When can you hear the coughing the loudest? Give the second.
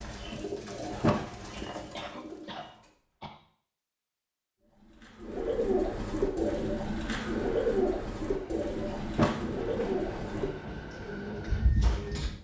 2 s.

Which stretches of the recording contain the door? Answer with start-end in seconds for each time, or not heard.
1.0-1.7, 9.2-9.8.